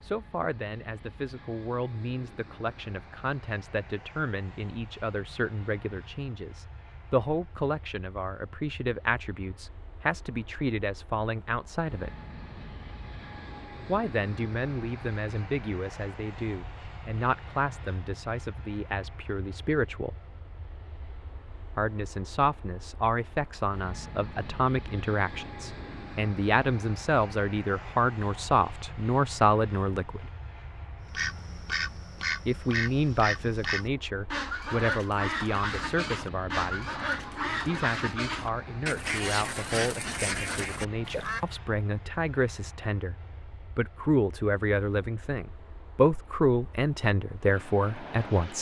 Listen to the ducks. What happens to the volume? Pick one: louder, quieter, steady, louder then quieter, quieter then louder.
steady.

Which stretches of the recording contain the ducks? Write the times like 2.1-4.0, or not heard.
31.1-41.5.